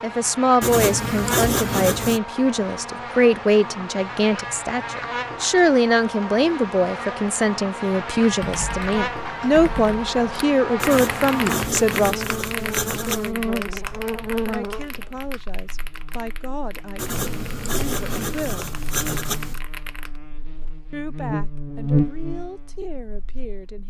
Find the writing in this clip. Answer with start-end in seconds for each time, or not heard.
0.6-2.2, 10.8-13.3, 16.9-19.6.